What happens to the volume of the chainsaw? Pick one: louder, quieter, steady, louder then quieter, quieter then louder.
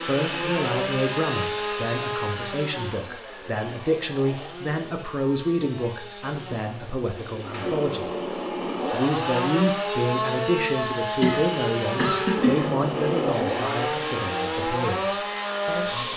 quieter then louder.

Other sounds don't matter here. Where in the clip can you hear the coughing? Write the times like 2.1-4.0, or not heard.
11.2-12.8.